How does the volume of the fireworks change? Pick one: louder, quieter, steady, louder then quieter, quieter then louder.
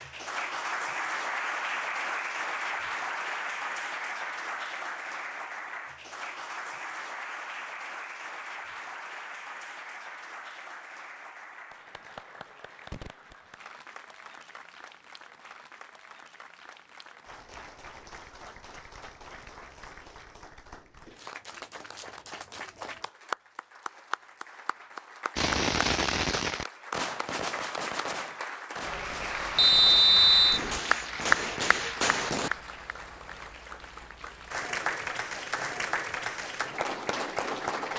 quieter then louder.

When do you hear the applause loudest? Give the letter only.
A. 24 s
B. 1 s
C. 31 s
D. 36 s
C.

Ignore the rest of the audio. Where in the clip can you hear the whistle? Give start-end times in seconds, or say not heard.
29.6-30.6.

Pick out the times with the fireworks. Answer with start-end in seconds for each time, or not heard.
25.4-32.5.